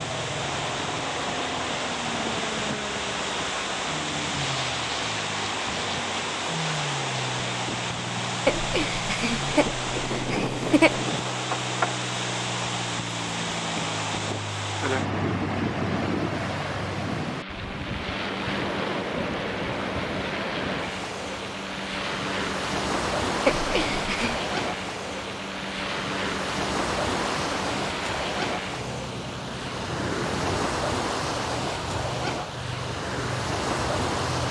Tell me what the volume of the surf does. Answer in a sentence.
The loudness of the surf stays about the same.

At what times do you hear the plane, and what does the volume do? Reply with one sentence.
You can hear the plane from 0.0 to 34.4 s, at a steady volume.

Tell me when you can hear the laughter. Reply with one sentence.
You can hear the laughter from 8.4 to 11.0 s and from 23.4 to 24.4 s.